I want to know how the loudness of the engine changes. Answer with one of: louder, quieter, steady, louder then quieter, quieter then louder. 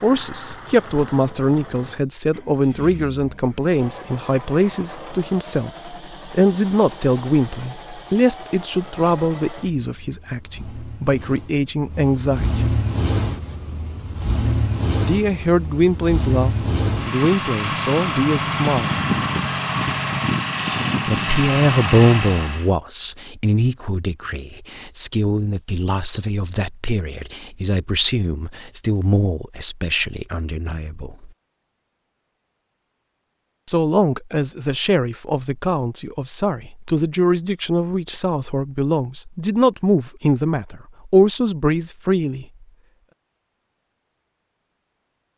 louder.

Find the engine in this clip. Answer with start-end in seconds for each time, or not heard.
0.0-22.7.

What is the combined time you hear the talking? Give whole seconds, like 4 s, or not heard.
36 s.